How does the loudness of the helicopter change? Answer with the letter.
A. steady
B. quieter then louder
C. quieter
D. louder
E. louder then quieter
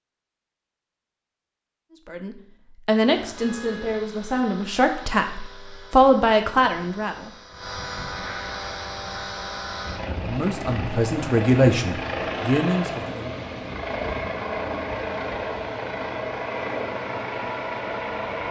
D.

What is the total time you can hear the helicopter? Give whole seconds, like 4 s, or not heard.
15 s.